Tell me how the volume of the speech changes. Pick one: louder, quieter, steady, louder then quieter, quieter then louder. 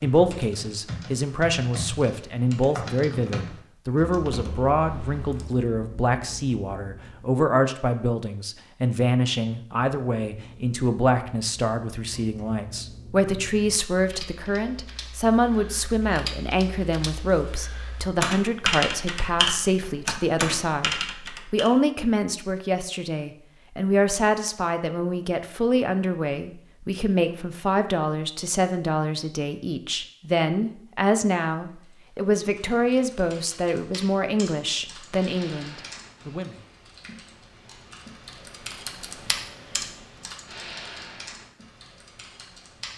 steady.